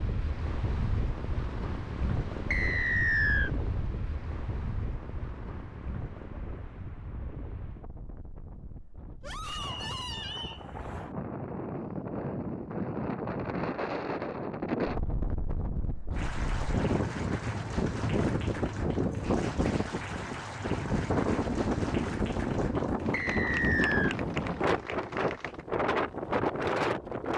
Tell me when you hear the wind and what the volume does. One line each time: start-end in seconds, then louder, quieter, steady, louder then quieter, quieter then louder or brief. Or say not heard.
0.0-27.3 quieter then louder.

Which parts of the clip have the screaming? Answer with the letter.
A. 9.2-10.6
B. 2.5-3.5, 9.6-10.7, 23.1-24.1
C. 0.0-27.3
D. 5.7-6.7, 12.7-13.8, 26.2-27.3
A.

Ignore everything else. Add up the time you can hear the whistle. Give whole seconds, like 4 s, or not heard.
3 s.